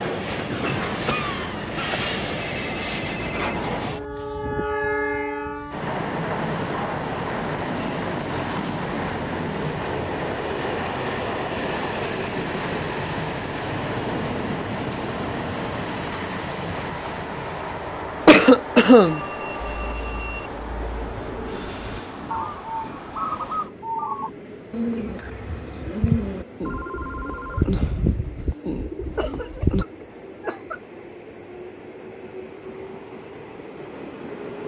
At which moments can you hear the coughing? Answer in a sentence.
The coughing can be heard from 1.1 to 2.0 s, from 18.2 to 19.2 s and from 29.1 to 30.8 s.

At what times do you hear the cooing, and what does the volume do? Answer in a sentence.
The cooing can be heard from 19.6 to 29.9 s, getting louder.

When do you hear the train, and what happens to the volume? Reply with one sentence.
You can hear the train from 0.0 to 34.6 s, getting quieter.